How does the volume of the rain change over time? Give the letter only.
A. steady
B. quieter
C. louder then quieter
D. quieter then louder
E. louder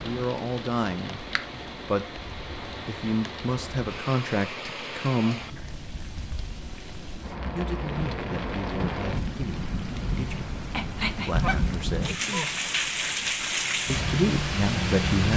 E.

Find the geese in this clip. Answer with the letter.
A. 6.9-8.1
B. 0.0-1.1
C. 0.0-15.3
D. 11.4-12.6
D.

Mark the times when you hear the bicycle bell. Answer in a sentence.
The bicycle bell can't be heard in this clip.